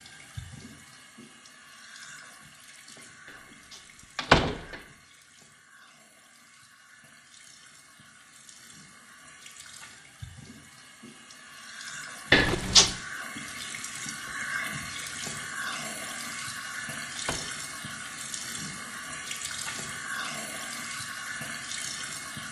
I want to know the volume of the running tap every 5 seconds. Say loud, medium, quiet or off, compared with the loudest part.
quiet, quiet, loud, loud, loud.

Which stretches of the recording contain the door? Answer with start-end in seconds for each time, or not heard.
4.2-4.8, 12.3-12.9, 17.1-17.6.